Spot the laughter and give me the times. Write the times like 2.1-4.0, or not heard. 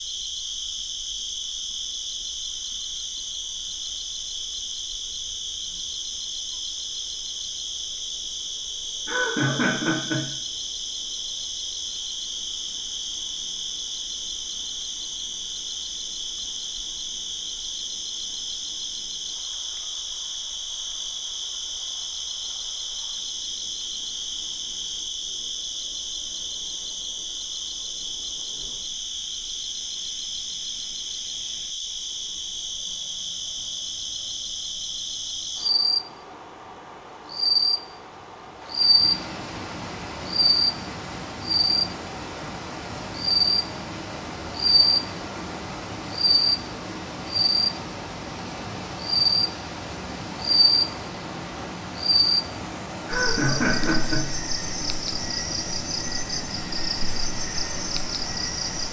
9.1-10.2, 53.0-54.3.